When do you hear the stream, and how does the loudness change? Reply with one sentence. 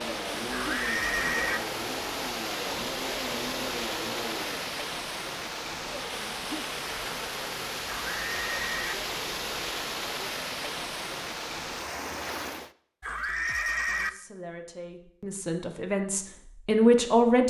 You can hear the stream from 0.0 to 12.8 s, at a steady volume.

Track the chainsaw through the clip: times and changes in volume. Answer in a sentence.
The chainsaw can be heard from 0.0 to 4.7 s, at a steady volume.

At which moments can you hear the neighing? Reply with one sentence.
You can hear the neighing from 0.5 to 1.6 s, from 7.9 to 8.9 s and from 13.0 to 14.1 s.